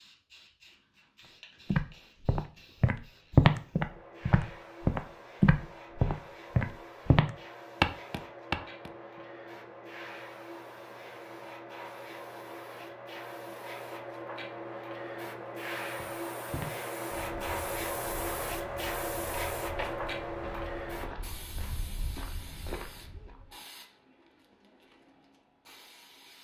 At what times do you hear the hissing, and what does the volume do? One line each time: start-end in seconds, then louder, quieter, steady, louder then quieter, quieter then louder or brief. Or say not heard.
0.0-26.4 louder then quieter.